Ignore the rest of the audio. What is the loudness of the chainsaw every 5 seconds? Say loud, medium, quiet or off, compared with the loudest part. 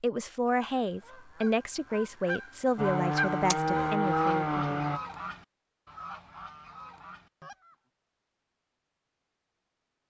loud, off.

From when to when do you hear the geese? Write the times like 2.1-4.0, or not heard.
0.7-7.8.